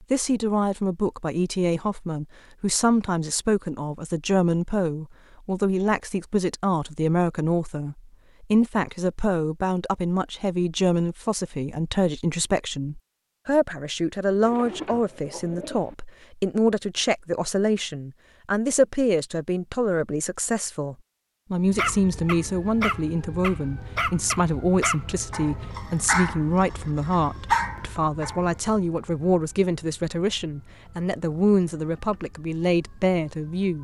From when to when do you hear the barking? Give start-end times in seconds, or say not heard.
21.8-28.6.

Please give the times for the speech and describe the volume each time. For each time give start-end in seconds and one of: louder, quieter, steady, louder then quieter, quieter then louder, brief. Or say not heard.
0.1-33.8 steady.